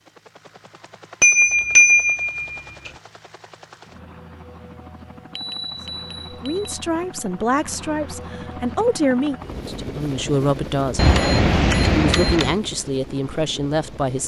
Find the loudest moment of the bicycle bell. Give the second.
2 s.